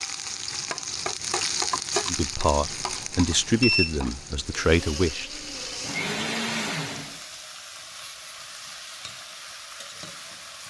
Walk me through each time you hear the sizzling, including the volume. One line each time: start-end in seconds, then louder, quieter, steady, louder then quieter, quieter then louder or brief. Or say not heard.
0.0-10.6 quieter.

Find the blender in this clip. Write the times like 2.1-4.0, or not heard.
4.5-7.2.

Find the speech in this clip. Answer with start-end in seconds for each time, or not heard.
2.0-5.4.